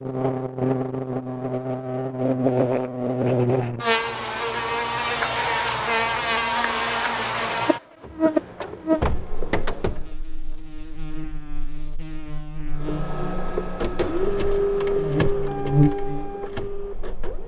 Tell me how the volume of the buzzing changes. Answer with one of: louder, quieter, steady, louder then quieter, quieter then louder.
quieter then louder.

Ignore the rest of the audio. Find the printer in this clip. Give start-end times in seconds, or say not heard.
8.0-10.1, 12.8-17.4.